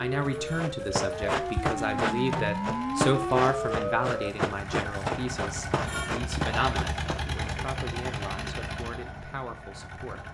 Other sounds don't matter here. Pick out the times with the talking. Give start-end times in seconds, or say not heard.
0.0-10.2.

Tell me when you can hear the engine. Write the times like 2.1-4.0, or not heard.
0.0-10.2.